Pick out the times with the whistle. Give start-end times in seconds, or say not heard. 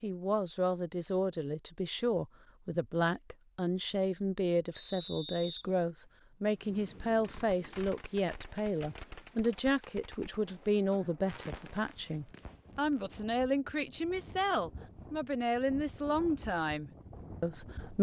4.8-6.2.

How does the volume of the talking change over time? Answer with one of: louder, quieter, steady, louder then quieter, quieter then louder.
steady.